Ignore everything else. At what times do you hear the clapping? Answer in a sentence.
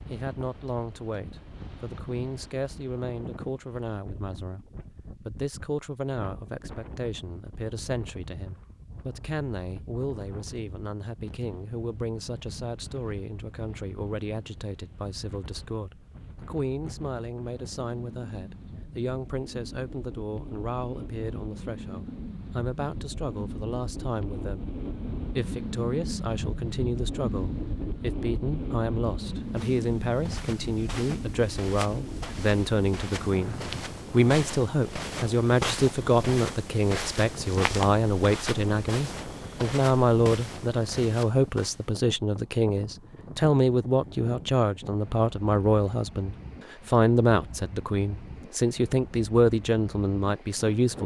The clapping can't be heard in this clip.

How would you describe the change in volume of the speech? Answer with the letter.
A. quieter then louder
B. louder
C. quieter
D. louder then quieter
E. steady
B.